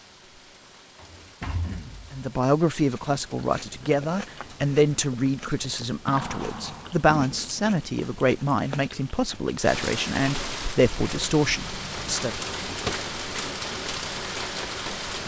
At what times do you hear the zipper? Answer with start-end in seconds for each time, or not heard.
not heard.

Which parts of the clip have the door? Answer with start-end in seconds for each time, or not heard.
0.9-2.1, 6.1-7.7, 12.7-13.5.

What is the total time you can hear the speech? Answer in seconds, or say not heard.
10 s.